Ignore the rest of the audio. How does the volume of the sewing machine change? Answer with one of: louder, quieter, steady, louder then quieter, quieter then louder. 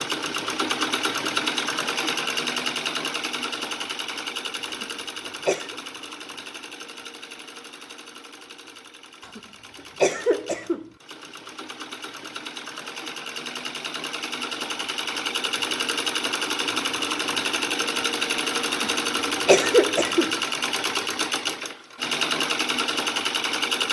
quieter then louder.